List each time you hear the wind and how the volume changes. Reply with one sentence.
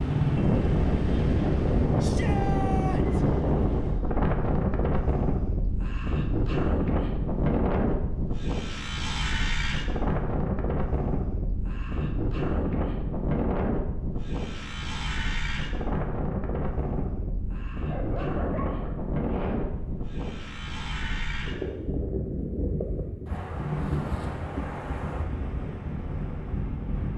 The wind can be heard from 0.0 to 27.1 s, getting quieter.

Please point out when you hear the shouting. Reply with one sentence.
The shouting can be heard from 2.0 to 3.2 s.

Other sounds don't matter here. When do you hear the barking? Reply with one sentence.
The barking can be heard from 17.9 to 19.9 s.